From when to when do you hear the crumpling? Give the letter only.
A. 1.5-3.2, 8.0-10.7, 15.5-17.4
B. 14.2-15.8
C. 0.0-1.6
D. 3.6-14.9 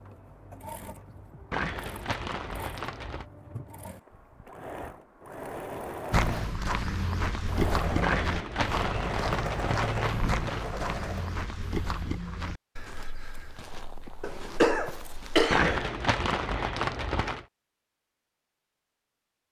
A.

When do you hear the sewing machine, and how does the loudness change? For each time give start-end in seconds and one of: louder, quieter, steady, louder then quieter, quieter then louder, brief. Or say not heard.
0.0-11.3 louder.